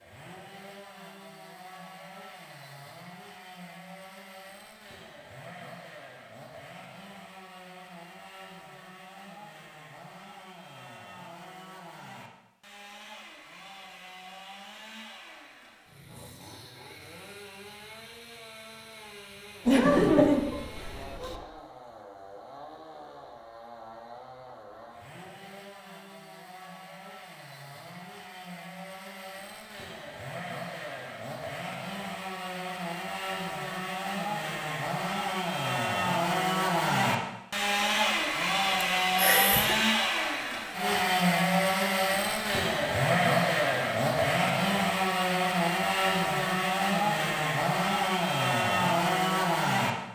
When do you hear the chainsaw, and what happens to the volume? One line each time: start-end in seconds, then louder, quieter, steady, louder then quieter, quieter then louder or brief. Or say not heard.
0.0-49.9 louder.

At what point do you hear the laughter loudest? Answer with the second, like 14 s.
20 s.